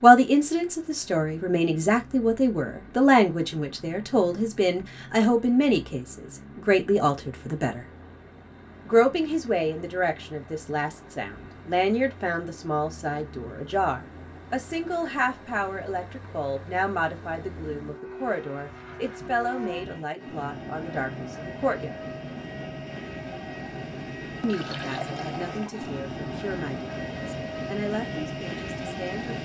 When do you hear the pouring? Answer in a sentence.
You can hear the pouring from 24.4 to 25.9 s.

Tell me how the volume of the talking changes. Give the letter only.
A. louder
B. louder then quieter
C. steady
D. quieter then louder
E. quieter
E.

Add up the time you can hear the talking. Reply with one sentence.
You can hear the talking for 26 seconds altogether.